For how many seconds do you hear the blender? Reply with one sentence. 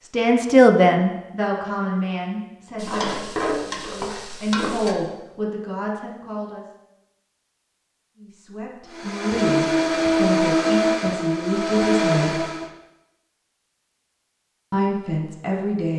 You can hear the blender for 4 seconds altogether.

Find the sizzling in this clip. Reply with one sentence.
The sizzling can be heard from 2.8 to 5.0 s.